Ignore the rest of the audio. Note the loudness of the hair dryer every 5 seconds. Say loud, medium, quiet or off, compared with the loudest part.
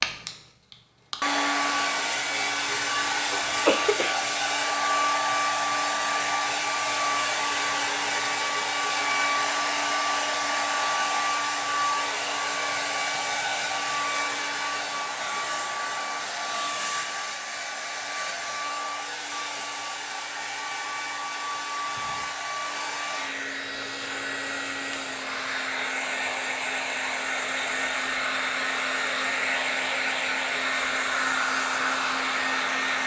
loud, loud, loud, medium, medium, loud, loud.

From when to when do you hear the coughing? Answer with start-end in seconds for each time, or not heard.
3.3-4.2.